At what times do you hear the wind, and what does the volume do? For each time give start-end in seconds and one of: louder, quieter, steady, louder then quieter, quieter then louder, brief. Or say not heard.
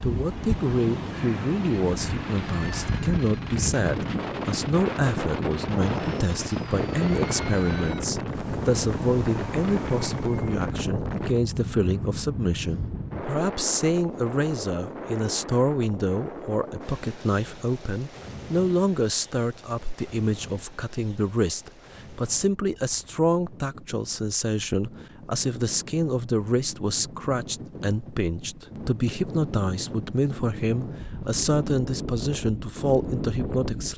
0.0-33.9 quieter then louder.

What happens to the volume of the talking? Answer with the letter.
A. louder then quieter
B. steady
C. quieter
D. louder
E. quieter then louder
B.